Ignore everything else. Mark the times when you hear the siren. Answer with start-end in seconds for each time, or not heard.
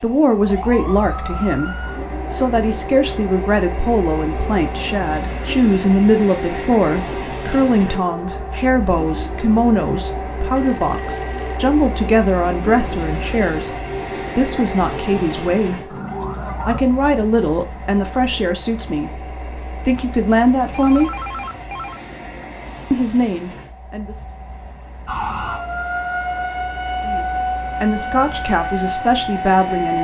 0.5-16.8, 25.1-29.9.